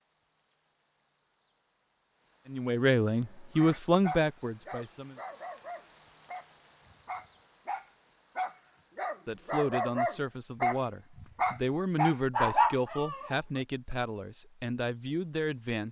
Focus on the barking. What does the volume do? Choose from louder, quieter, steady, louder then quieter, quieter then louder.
louder.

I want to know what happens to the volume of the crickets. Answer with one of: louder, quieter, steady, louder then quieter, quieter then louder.
louder then quieter.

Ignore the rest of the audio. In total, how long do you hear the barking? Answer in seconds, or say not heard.
10 s.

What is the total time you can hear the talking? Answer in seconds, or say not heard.
9 s.